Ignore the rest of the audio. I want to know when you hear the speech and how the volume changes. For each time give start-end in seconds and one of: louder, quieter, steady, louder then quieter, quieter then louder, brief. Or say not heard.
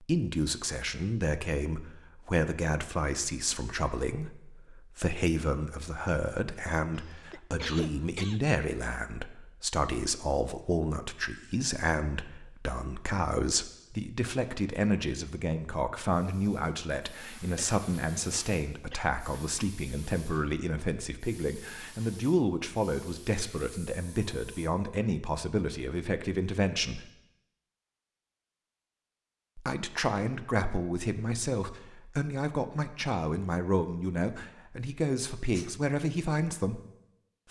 0.0-27.1 steady
29.6-36.8 steady.